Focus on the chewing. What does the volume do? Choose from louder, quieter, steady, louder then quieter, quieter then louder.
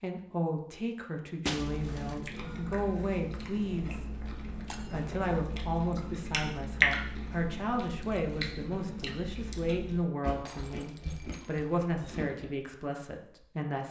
louder then quieter.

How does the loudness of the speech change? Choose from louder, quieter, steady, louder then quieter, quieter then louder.
steady.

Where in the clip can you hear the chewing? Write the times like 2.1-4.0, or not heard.
1.6-12.5.